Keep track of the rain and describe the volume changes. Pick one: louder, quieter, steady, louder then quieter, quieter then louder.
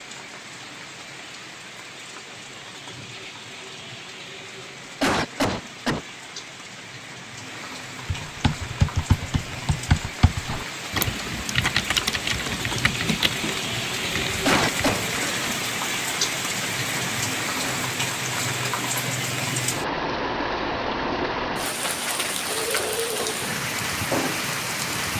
louder.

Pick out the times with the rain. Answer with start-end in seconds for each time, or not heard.
0.0-25.1.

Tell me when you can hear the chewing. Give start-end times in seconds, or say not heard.
not heard.